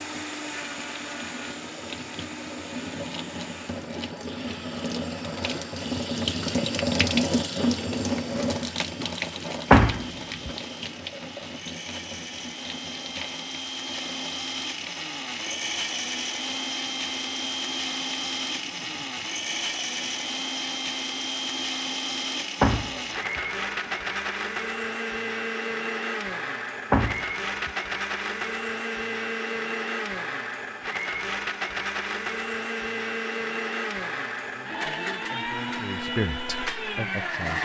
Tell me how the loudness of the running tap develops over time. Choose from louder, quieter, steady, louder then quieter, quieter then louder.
louder then quieter.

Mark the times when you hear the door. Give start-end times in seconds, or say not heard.
9.7-10.5, 22.6-23.4, 26.9-27.7.